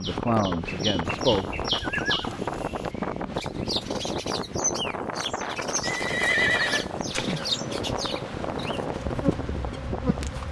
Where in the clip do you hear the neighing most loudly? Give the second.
6 s.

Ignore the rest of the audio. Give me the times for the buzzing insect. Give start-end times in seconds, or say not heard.
6.9-10.4.